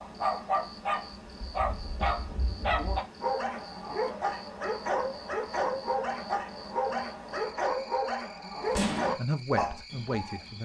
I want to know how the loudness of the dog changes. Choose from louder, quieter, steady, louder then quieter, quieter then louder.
steady.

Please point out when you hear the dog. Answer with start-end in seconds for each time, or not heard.
0.0-10.6.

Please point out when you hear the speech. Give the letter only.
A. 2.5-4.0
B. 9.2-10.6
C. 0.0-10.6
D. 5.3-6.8
B.